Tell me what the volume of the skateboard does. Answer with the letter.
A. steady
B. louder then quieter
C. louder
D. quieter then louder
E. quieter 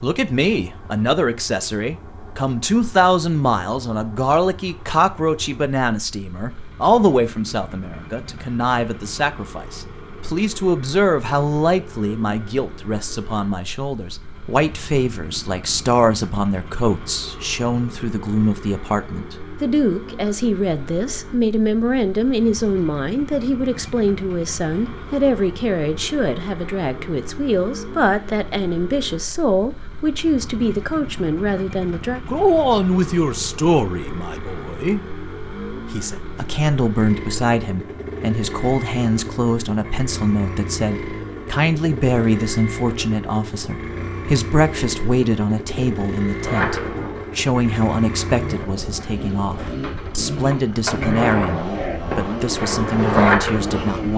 C.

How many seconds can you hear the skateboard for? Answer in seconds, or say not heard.
8 s.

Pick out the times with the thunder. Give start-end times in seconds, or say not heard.
not heard.